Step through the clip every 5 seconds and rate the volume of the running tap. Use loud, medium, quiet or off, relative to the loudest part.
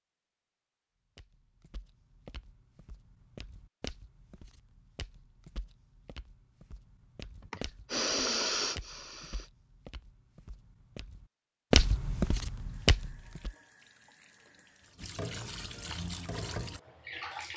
off, off, quiet, loud.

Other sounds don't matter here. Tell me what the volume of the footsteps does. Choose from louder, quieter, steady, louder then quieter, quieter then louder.
louder.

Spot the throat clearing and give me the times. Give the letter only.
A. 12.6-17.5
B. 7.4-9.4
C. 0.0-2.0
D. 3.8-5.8
B.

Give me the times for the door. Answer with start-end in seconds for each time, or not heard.
not heard.